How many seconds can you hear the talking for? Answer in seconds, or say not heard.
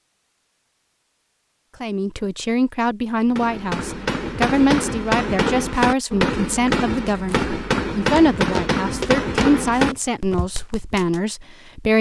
10 s.